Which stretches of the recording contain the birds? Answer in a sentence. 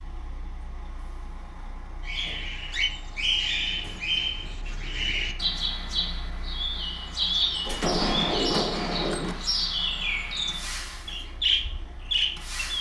You can hear the birds from 2.0 to 12.7 s.